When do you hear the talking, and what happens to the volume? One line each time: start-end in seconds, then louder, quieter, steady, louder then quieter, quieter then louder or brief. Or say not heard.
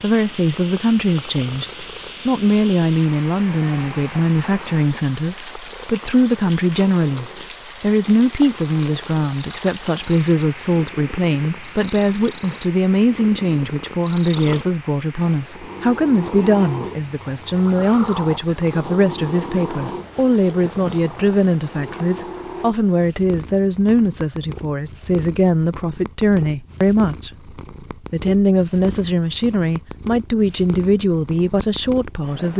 0.0-27.5 steady
28.1-32.5 steady.